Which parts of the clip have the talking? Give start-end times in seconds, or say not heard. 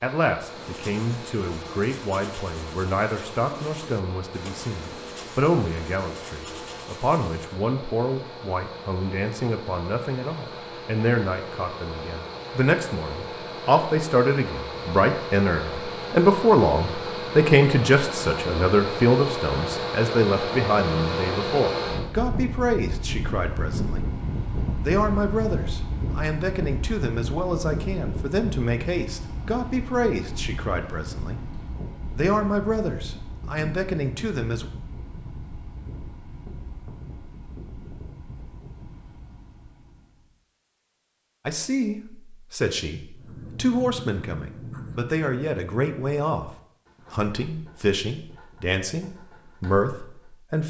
0.0-24.1, 24.8-31.4, 32.1-34.6, 41.5-50.6.